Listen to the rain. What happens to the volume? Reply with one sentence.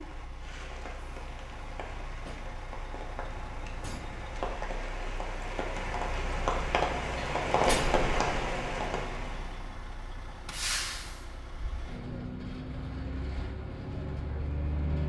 The volume of the rain goes up.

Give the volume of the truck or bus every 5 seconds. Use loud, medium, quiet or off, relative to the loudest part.
medium, loud, loud.